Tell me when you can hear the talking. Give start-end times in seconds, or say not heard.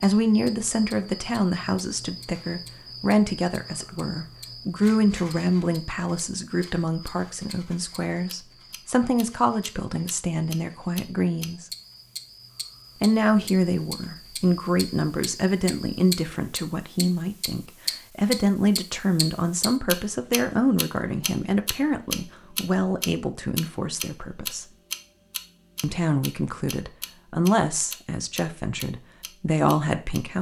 0.0-11.7, 13.0-24.6, 25.8-30.3.